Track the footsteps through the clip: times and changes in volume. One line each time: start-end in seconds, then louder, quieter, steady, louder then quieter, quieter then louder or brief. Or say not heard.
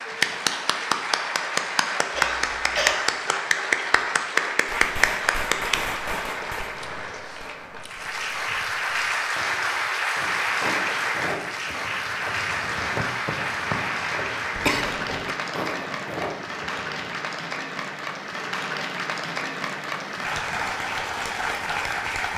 10.2-17.2 quieter then louder.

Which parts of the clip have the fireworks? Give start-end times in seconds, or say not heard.
4.7-9.9.